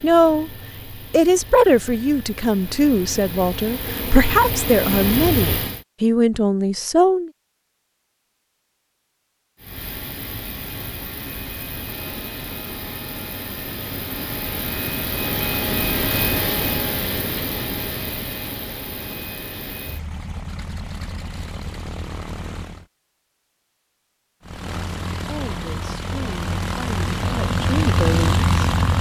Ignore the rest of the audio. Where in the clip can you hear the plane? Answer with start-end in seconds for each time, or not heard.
0.0-5.8, 9.6-22.9, 24.4-28.9.